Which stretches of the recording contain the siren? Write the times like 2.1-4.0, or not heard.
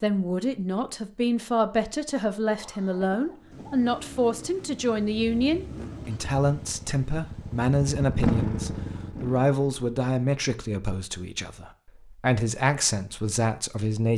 not heard.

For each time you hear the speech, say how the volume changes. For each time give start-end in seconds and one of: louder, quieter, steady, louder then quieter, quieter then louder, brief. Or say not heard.
0.0-14.1 steady.